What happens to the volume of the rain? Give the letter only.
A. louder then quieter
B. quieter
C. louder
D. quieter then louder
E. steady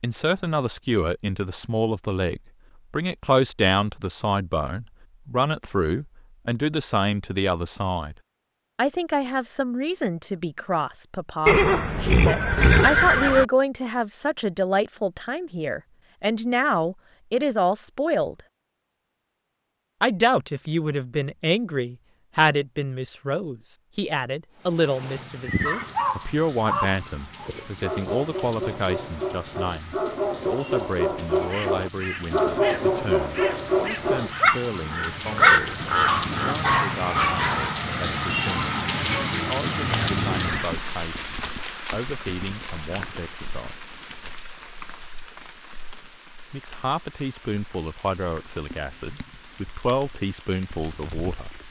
A.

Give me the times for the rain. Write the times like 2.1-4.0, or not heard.
24.6-51.6.